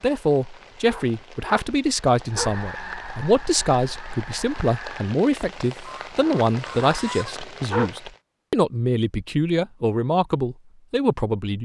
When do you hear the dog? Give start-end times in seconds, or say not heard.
0.8-2.5, 6.2-8.0.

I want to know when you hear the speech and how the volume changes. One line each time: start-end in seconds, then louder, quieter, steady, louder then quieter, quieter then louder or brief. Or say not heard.
0.0-11.5 steady.